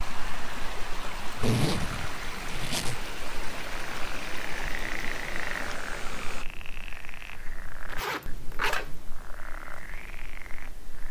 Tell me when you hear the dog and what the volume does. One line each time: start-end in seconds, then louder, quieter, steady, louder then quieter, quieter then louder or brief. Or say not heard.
not heard.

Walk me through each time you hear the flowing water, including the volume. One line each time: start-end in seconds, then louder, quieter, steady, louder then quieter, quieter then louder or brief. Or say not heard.
0.0-6.5 steady.